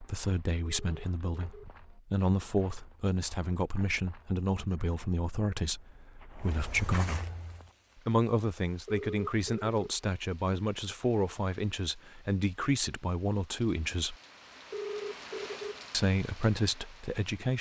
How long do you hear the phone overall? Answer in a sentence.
You can hear the phone for 3 seconds altogether.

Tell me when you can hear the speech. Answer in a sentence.
The speech can be heard from 0.0 to 7.2 s, from 8.1 to 14.2 s and from 15.9 to 17.5 s.